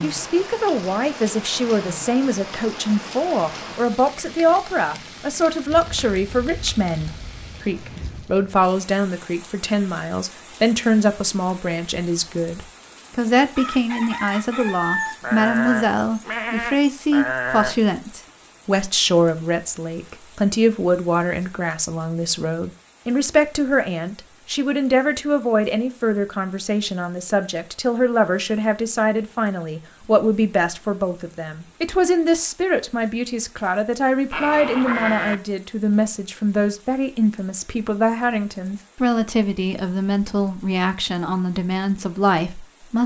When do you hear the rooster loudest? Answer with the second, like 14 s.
15 s.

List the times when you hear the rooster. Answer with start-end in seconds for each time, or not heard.
13.1-15.2.